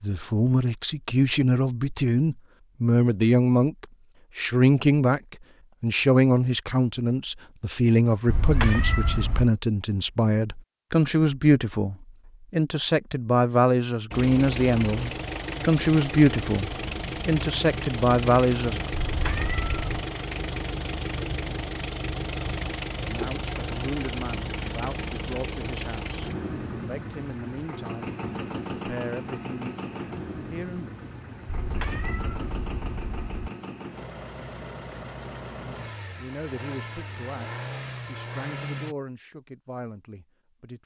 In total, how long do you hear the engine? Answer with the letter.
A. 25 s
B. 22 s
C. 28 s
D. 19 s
A.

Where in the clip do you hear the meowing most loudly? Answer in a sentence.
The volume of the meowing peaks at 9 seconds.